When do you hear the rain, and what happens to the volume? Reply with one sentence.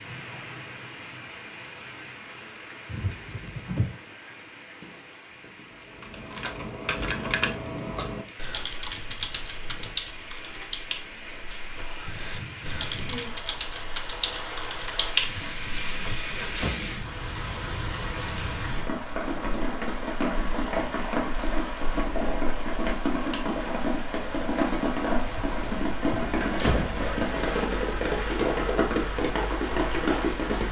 The rain can be heard from 0.0 to 30.6 s, getting louder.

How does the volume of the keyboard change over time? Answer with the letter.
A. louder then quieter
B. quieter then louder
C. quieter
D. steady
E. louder
B.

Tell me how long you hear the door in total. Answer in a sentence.
The door can be heard for 5 seconds in total.